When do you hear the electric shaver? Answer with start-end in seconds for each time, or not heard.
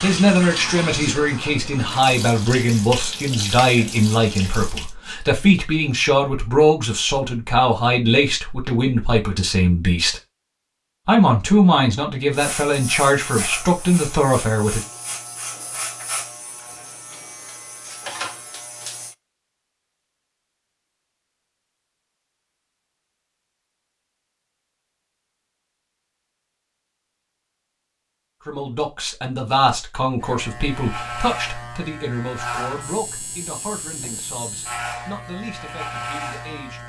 12.3-19.1, 30.2-36.8.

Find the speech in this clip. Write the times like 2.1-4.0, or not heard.
0.0-10.2, 11.1-14.8, 28.4-36.8.